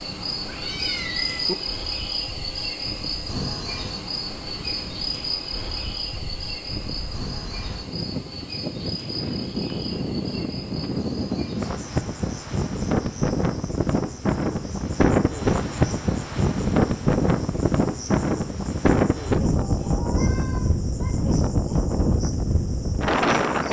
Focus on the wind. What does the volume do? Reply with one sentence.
The loudness of the wind goes up.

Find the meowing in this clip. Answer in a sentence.
The meowing can be heard from 0.5 to 1.6 s and from 19.6 to 21.1 s.